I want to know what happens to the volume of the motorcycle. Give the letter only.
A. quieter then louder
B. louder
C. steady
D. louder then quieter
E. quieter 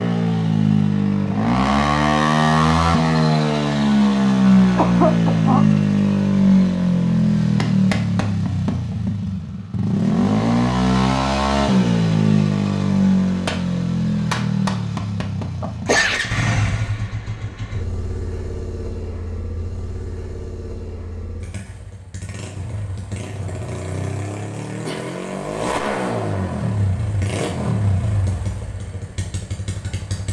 A.